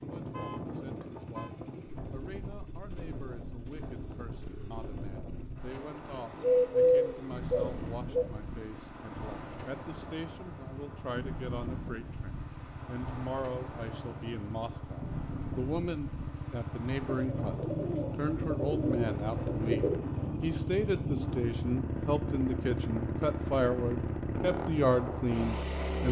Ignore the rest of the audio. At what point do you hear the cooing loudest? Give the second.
7 s.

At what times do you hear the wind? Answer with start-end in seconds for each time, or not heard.
0.0-26.0.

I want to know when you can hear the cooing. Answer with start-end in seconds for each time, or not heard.
6.4-8.2, 17.1-20.0.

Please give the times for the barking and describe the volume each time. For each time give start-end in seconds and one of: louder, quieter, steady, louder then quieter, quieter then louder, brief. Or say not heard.
not heard.